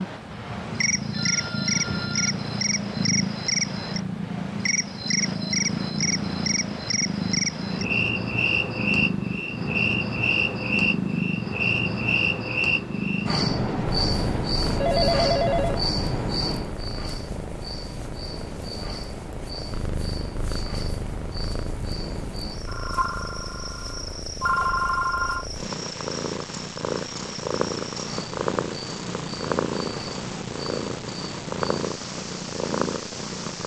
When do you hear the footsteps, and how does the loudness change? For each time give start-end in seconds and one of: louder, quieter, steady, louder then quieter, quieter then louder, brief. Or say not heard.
not heard.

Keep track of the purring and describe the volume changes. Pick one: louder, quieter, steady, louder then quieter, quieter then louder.
quieter then louder.